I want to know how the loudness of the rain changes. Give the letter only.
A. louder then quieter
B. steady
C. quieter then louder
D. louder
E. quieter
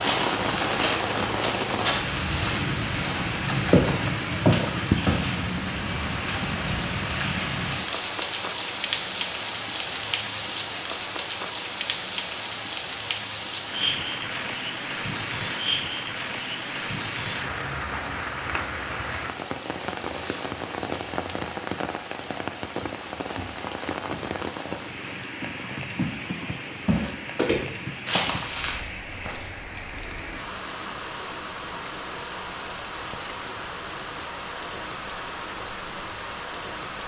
E.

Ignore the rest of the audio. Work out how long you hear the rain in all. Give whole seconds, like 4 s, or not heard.
37 s.